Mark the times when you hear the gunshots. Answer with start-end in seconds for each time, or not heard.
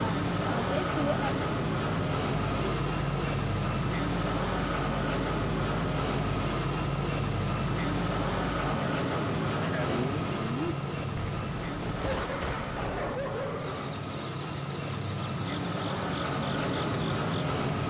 11.2-13.2.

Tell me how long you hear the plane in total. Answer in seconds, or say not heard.
18 s.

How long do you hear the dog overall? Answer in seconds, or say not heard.
2 s.